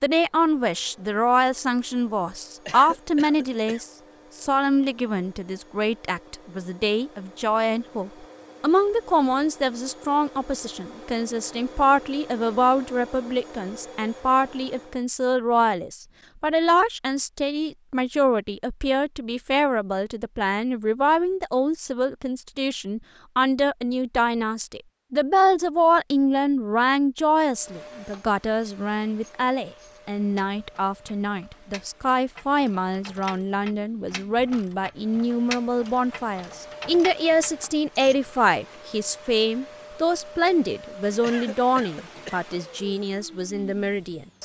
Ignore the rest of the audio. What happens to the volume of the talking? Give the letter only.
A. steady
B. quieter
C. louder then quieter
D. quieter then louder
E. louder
A.